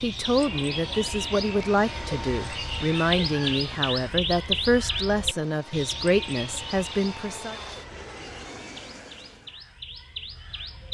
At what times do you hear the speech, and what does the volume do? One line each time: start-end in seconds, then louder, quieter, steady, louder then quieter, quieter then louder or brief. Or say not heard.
0.0-7.5 steady.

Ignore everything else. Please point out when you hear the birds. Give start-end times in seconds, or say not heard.
0.0-10.8.